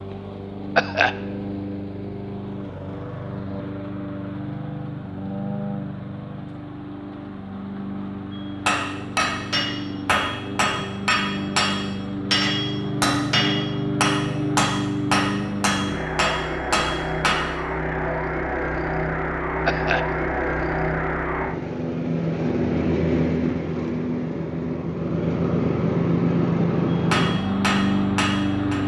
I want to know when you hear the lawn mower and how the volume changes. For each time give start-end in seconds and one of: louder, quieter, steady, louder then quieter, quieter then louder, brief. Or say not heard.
0.0-28.8 louder.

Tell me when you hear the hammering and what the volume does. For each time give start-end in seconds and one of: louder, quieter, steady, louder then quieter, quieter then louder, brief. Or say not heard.
8.7-17.4 steady
27.1-28.8 brief.